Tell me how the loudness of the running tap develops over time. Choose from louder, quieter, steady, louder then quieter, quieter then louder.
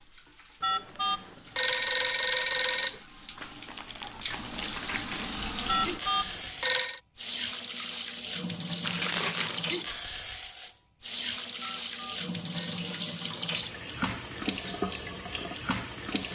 louder.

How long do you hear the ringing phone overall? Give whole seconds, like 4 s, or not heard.
5 s.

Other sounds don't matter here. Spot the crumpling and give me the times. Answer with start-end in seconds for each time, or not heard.
3.4-5.4, 8.8-9.7.